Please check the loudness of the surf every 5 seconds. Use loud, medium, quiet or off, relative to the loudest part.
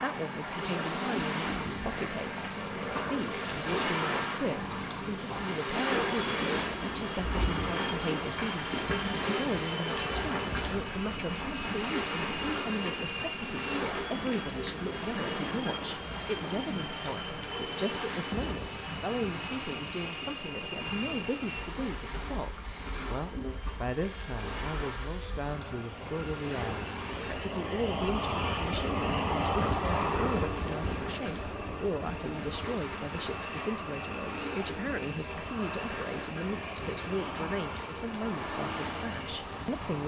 loud, loud, loud, medium, medium, medium, medium, medium.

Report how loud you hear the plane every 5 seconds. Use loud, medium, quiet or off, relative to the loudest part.
medium, medium, medium, medium, medium, loud, loud, medium.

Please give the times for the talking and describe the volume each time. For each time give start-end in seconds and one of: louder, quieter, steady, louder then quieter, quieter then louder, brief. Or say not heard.
0.0-40.0 steady.